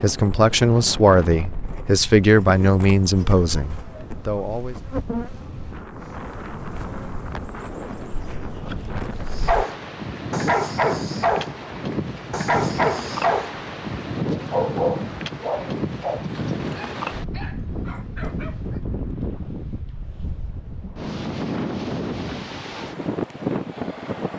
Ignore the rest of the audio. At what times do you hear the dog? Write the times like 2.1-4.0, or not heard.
9.3-11.6, 12.3-13.6, 14.3-18.8.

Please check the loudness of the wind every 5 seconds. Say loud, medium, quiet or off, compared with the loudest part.
medium, medium, loud, loud, loud.